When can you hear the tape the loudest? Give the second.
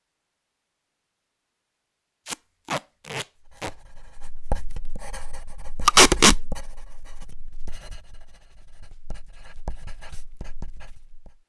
6 s.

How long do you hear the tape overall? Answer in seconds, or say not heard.
2 s.